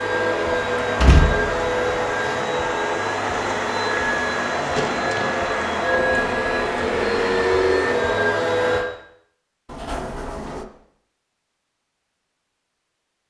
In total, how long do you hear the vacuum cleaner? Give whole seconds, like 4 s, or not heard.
9 s.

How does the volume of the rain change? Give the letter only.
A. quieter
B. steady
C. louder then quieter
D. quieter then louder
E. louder
B.